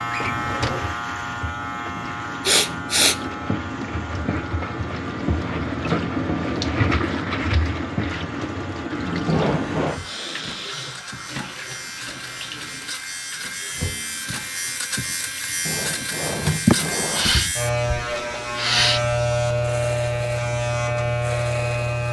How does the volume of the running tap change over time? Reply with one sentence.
The loudness of the running tap goes up, then down.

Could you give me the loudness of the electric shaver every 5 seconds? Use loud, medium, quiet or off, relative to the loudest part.
medium, quiet, medium, loud, loud.